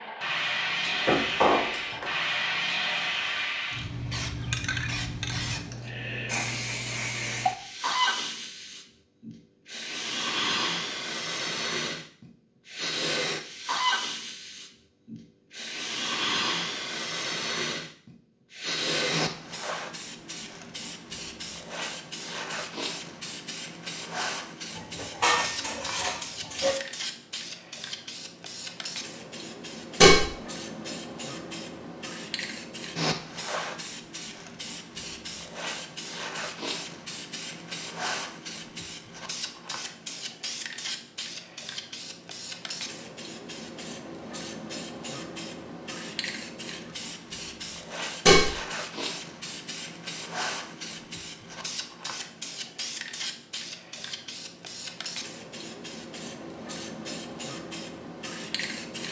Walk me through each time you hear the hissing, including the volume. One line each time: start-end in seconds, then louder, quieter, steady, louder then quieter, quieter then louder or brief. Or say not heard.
0.0-59.0 quieter.